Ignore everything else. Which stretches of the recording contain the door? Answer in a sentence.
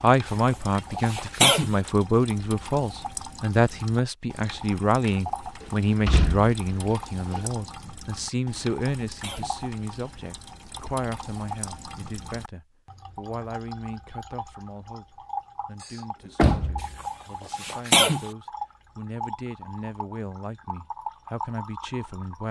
The door can be heard from 5.6 to 7.5 s and from 15.8 to 16.9 s.